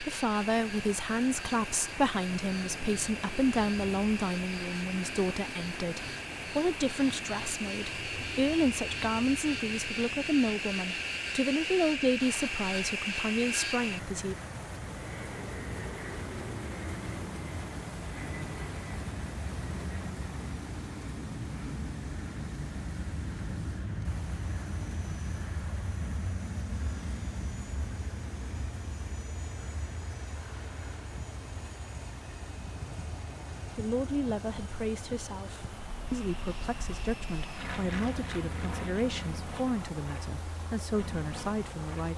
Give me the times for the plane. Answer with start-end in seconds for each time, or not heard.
0.0-42.1.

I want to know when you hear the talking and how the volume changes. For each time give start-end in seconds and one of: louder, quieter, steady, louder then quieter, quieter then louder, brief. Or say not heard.
0.0-14.3 steady
33.8-42.1 steady.